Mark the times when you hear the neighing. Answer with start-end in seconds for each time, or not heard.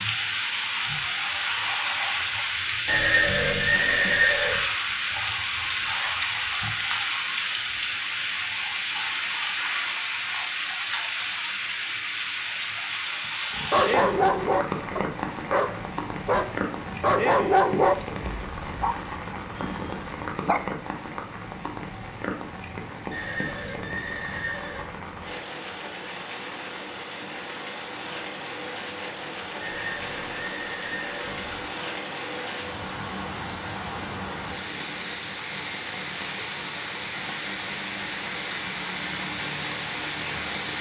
2.9-4.6, 23.1-25.0, 29.6-31.6.